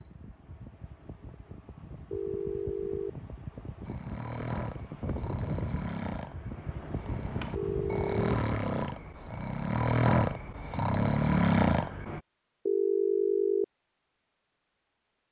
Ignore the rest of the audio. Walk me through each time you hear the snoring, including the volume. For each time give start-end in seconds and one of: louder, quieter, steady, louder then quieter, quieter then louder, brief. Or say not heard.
3.9-12.2 louder.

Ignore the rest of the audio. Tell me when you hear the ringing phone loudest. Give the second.
13 s.